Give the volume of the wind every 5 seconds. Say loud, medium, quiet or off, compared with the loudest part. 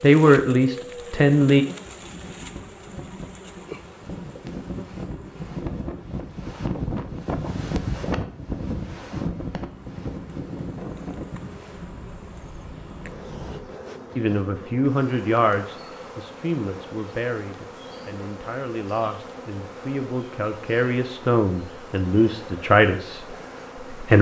medium, loud, medium, off, off.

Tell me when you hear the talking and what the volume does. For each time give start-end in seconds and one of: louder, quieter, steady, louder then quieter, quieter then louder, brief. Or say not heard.
0.0-1.6 brief
14.2-24.1 quieter then louder.